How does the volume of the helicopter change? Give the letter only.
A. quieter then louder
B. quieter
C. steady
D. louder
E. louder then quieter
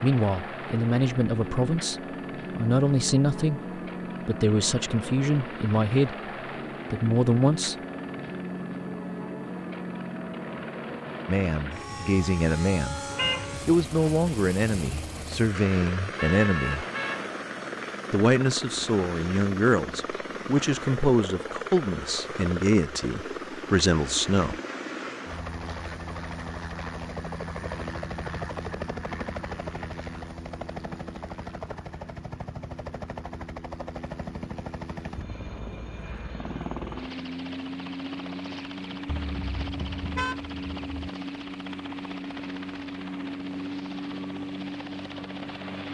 C.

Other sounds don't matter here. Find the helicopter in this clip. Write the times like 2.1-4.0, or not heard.
0.0-45.8.